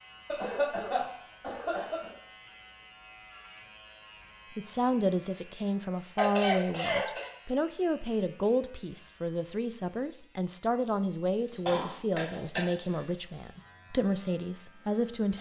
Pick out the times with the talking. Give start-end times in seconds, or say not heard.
4.5-15.3.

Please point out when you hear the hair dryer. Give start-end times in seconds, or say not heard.
not heard.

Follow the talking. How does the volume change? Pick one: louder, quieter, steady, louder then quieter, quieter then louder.
steady.